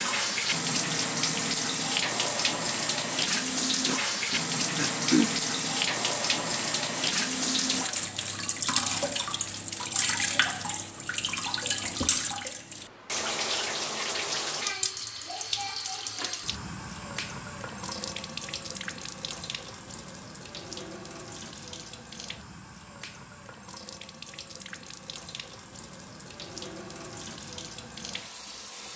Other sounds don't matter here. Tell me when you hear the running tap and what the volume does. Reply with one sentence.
You can hear the running tap from 0.0 to 28.9 s, getting quieter.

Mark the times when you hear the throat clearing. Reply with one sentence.
The throat clearing can be heard from 3.9 to 5.3 s.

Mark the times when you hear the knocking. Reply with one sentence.
The knocking can't be heard in this clip.